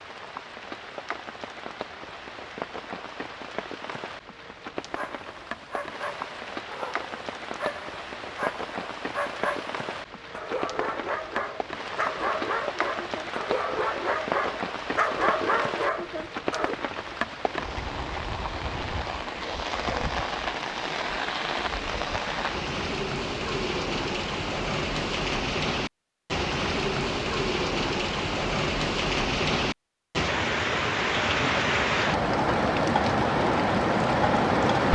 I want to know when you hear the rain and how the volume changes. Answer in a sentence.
The rain can be heard from 0.0 to 34.8 s, getting louder.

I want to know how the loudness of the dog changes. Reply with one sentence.
The volume of the dog goes up.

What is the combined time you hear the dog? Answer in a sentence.
You can hear the dog for 12 seconds altogether.